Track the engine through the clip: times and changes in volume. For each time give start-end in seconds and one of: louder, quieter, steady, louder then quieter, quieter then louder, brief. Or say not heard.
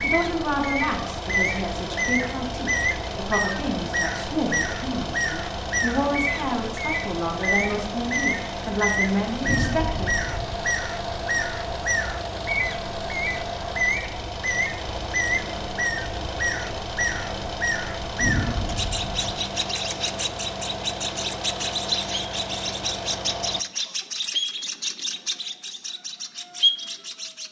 0.0-23.6 steady.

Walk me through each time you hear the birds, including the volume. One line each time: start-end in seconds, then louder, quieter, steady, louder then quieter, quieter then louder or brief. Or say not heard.
0.0-27.4 steady.